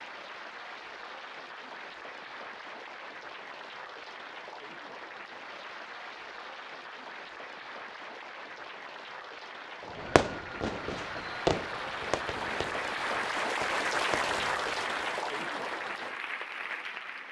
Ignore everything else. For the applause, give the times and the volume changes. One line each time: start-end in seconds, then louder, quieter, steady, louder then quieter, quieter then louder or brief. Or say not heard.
0.0-17.2 louder.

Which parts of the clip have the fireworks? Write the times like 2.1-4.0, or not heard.
9.9-15.1.